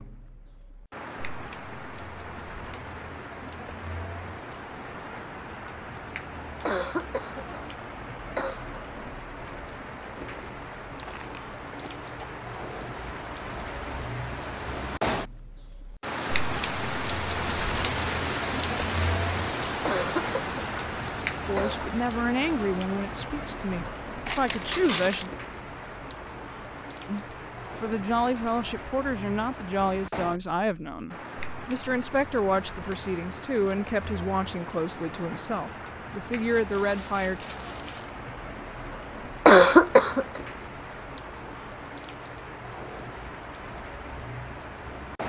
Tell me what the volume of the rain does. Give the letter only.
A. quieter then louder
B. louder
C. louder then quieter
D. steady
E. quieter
C.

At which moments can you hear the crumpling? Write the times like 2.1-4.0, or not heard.
10.2-12.3, 24.2-25.3, 36.3-38.1.